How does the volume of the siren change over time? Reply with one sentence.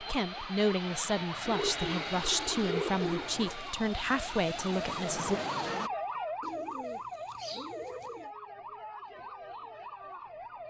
The loudness of the siren goes up, then down.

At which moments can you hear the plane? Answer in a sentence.
The plane can be heard from 0.0 to 5.9 s.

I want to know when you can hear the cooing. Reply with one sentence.
You can hear the cooing from 1.4 to 3.8 s and from 6.4 to 8.3 s.